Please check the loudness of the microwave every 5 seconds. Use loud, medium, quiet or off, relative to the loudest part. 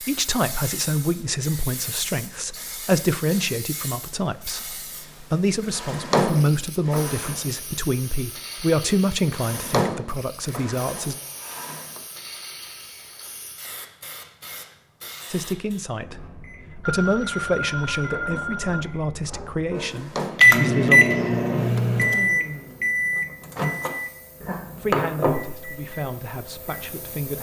off, off, off, quiet, loud, medium.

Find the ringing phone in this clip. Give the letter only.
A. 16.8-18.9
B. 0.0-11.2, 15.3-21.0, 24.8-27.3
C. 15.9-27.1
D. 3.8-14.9
A.